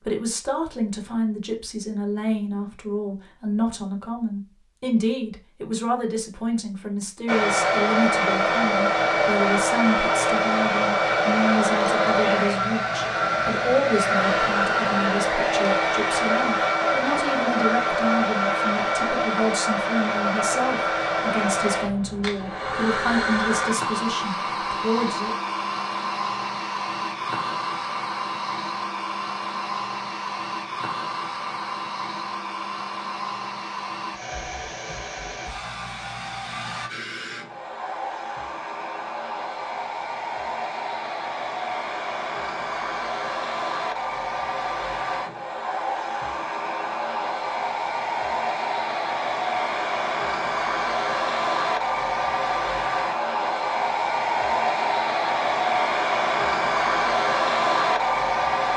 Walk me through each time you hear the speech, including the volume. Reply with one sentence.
You can hear the speech from 0.0 to 25.4 s, at a steady volume.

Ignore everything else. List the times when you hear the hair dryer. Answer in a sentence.
You can hear the hair dryer from 7.2 to 58.7 s.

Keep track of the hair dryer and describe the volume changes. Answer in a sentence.
The volume of the hair dryer goes down, then up.